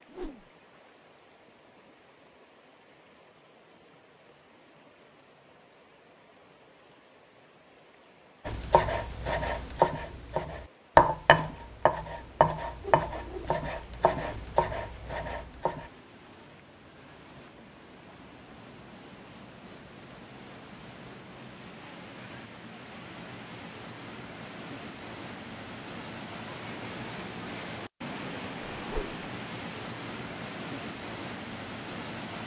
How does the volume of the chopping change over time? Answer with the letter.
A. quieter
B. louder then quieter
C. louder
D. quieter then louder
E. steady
B.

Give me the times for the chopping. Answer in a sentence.
The chopping can be heard from 8.4 to 15.9 s.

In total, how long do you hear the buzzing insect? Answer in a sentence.
You can't hear the buzzing insect here.